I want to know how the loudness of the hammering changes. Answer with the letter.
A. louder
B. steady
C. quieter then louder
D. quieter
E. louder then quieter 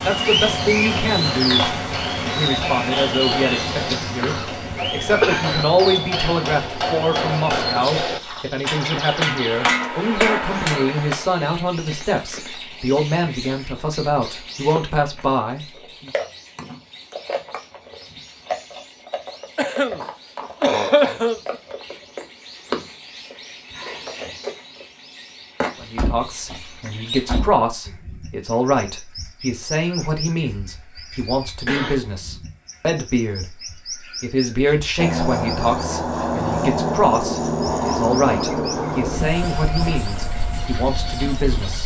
A.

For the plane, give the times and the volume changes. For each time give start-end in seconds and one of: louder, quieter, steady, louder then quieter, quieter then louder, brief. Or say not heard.
35.0-41.8 quieter.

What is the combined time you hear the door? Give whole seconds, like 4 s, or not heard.
2 s.